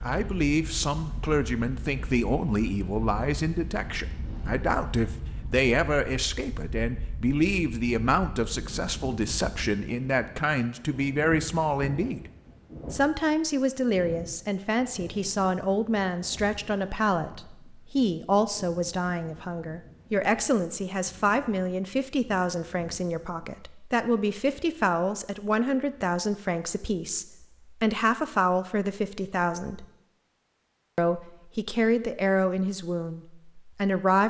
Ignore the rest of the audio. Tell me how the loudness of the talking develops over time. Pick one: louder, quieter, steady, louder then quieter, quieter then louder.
steady.